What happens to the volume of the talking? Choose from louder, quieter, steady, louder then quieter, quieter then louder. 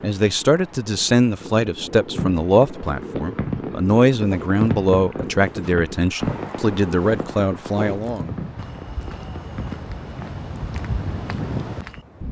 steady.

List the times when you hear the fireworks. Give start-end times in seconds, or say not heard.
2.1-9.8.